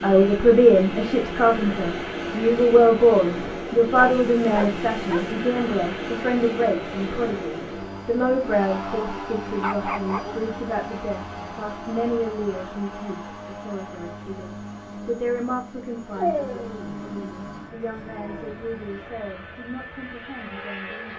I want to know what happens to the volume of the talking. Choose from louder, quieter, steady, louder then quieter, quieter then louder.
quieter.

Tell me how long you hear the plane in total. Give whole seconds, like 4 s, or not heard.
21 s.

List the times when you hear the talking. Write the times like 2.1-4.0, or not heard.
0.0-21.1.